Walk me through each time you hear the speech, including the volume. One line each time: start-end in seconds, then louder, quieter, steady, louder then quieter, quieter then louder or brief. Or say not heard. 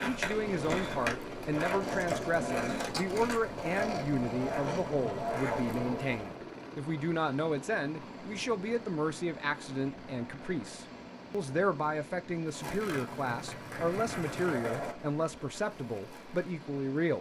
0.0-17.1 steady.